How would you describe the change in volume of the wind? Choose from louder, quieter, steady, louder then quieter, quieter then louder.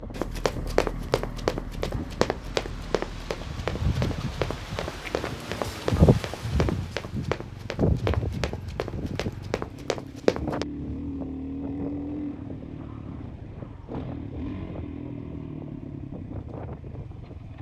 louder then quieter.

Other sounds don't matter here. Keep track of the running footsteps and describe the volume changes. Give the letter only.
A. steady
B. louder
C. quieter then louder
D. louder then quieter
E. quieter
E.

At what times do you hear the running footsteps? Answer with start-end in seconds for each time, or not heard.
0.1-10.7.